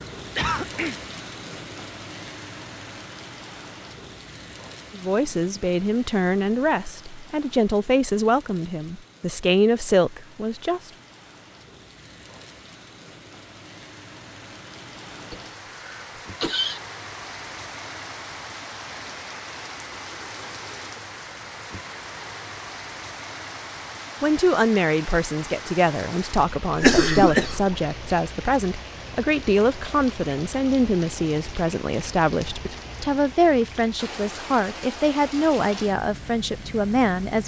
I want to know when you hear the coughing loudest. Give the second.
27 s.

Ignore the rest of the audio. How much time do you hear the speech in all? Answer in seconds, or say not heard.
19 s.